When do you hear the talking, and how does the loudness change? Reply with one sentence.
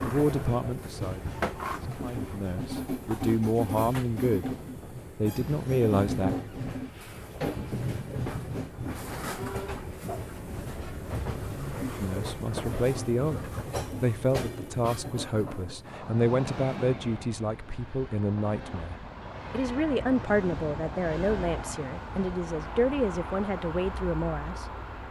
You can hear the talking from 0.0 to 4.5 s, getting quieter then louder; briefly from 5.2 to 6.3 s; briefly from 12.0 to 13.4 s; and from 14.0 to 24.6 s, at a steady volume.